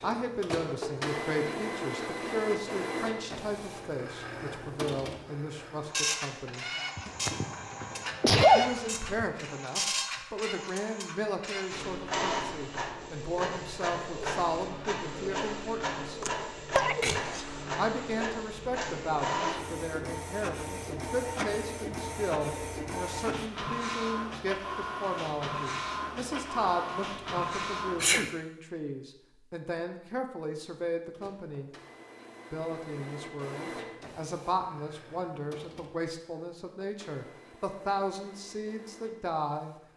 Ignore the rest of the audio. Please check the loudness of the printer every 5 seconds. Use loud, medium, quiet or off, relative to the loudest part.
loud, loud, loud, loud, loud, loud, medium, quiet.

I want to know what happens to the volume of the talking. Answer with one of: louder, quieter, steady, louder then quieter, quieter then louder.
steady.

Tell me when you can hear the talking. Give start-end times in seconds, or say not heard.
0.0-6.7, 8.5-16.2, 17.8-31.7, 32.5-39.8.